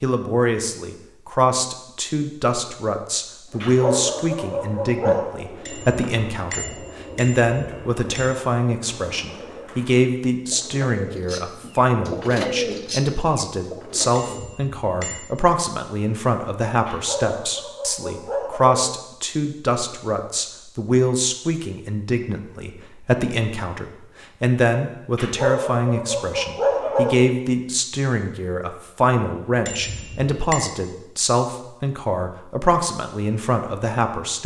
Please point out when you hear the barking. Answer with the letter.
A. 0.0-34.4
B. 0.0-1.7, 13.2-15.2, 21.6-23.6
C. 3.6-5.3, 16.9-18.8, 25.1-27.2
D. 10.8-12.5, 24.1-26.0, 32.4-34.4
C.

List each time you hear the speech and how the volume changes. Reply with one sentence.
You can hear the speech from 0.0 to 34.4 s, at a steady volume.